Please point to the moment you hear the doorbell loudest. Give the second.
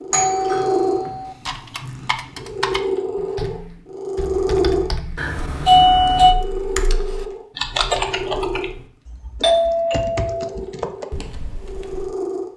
6 s.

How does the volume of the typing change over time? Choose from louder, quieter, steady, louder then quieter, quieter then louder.
louder then quieter.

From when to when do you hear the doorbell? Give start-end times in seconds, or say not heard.
0.1-1.4, 5.2-6.3, 9.4-10.5.